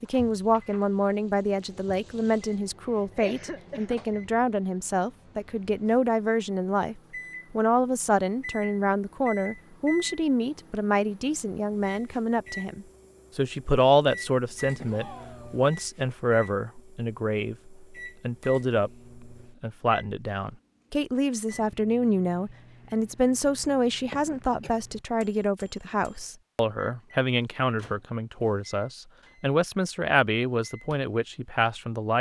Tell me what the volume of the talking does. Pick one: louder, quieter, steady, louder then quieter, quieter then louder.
steady.